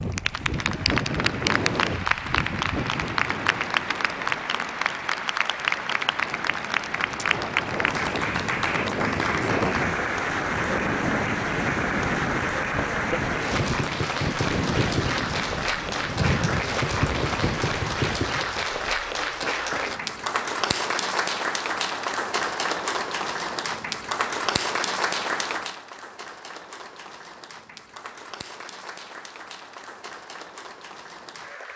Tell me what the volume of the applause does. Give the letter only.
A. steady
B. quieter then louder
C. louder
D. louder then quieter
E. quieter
E.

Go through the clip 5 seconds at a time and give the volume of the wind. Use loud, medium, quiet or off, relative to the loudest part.
loud, loud, loud, loud, off, off, off.